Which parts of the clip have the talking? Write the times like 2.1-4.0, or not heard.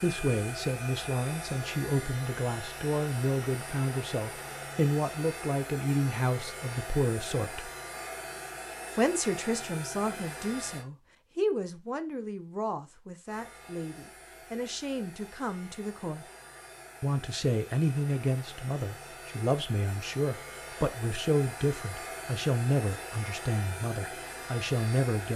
0.0-7.7, 8.9-16.2, 17.0-25.3.